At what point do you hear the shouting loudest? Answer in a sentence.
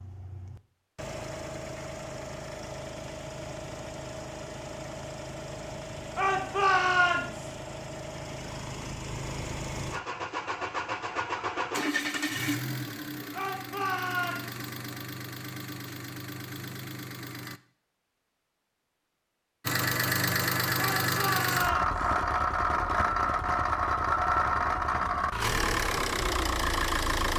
The volume of the shouting peaks at 7 seconds.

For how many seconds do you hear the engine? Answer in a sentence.
The engine can be heard for 25 seconds in total.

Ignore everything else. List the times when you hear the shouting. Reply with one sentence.
You can hear the shouting from 6.2 to 7.5 s, from 13.3 to 14.6 s and from 20.8 to 21.9 s.